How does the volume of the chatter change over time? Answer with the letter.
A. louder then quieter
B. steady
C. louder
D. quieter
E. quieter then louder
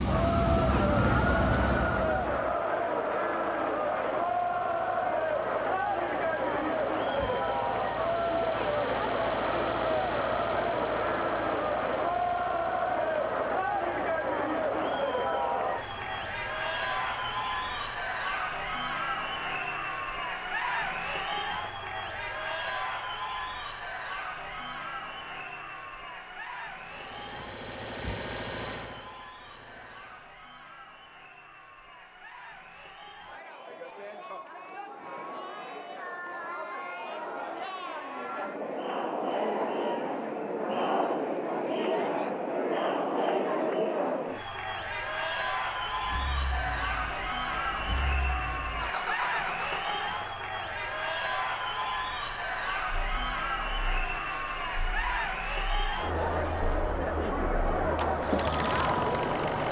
E.